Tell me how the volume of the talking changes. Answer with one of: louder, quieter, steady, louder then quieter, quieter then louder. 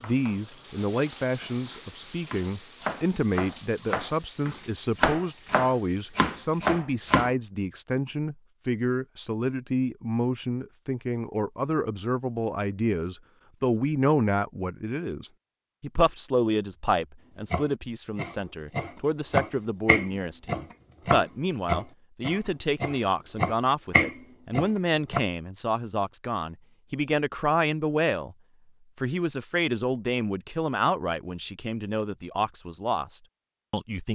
steady.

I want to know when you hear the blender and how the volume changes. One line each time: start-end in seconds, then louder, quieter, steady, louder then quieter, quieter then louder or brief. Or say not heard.
not heard.